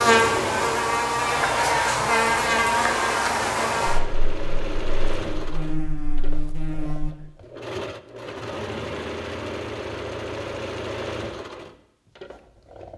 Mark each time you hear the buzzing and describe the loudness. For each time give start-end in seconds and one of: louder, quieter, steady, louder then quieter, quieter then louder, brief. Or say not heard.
0.0-7.2 quieter then louder.